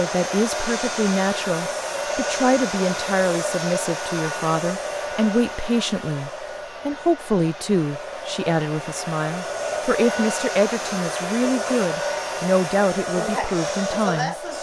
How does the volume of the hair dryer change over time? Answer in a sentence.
The volume of the hair dryer goes down, then up.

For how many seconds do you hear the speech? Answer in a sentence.
The speech can be heard for 14 seconds in total.